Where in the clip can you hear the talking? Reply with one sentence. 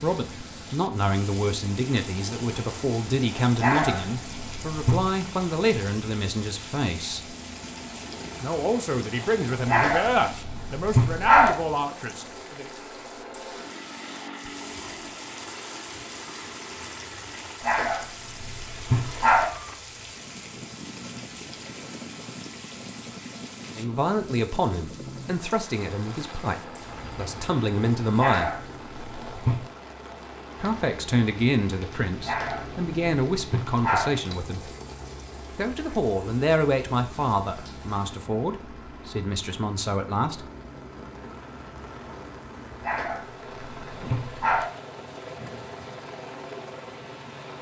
The talking can be heard from 0.0 to 7.3 s, from 8.4 to 12.7 s, from 23.8 to 28.6 s, from 30.6 to 34.7 s and from 35.5 to 40.5 s.